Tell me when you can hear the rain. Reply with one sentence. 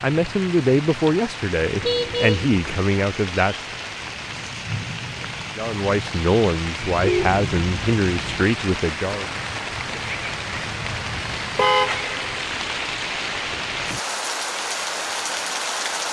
You can hear the rain from 0.0 to 16.0 s.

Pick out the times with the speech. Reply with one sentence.
The speech can be heard from 0.0 to 3.6 s and from 5.5 to 9.2 s.